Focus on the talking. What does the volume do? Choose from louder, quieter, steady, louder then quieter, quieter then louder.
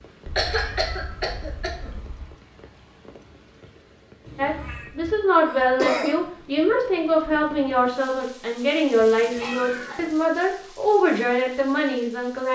steady.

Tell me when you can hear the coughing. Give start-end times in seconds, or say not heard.
0.3-1.9, 5.5-6.2, 9.0-10.2.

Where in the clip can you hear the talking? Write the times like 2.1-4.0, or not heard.
4.3-12.4.